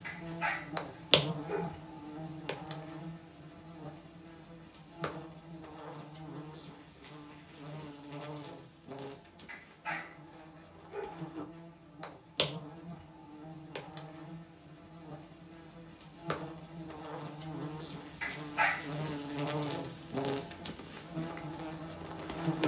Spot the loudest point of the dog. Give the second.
19 s.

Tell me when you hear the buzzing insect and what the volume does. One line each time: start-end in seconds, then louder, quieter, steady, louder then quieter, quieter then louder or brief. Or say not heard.
0.0-22.6 quieter then louder.